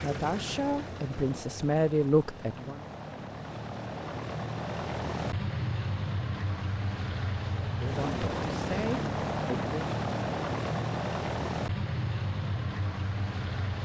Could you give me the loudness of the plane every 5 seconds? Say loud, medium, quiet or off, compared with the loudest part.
medium, loud, loud.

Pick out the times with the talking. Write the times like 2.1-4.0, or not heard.
0.0-2.8, 7.6-9.9.